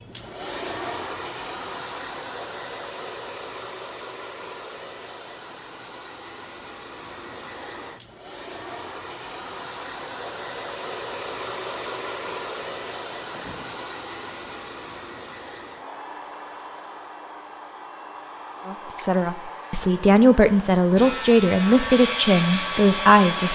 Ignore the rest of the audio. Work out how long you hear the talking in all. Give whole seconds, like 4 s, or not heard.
5 s.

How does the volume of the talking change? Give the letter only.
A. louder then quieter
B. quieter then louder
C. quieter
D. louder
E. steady
D.